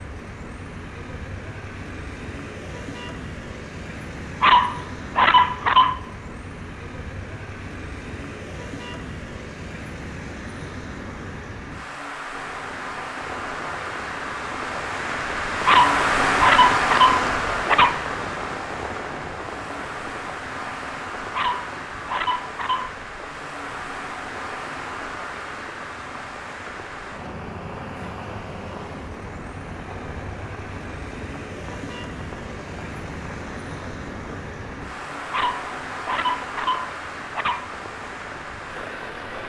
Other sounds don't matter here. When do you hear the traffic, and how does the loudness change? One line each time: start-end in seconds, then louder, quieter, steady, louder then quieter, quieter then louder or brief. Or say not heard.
0.0-39.4 louder then quieter.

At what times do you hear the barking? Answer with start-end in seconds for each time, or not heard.
4.4-6.0, 15.7-17.9, 21.3-22.9, 35.3-37.6.